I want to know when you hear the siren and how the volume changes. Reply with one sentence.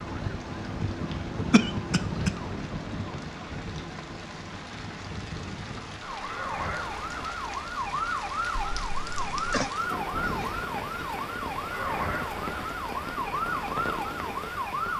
The siren can be heard from 0.0 to 14.9 s, getting quieter then louder.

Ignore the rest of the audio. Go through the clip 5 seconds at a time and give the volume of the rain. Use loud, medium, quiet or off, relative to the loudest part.
medium, loud, loud.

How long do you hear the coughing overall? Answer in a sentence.
You can hear the coughing for 2 seconds altogether.